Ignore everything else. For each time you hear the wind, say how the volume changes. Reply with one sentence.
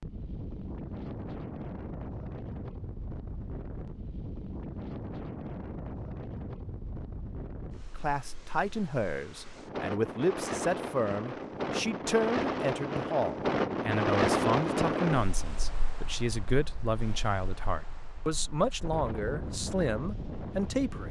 The wind can be heard from 0.0 to 21.0 s, getting louder then quieter.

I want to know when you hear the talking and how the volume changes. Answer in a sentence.
You can hear the talking from 8.0 to 21.0 s, at a steady volume.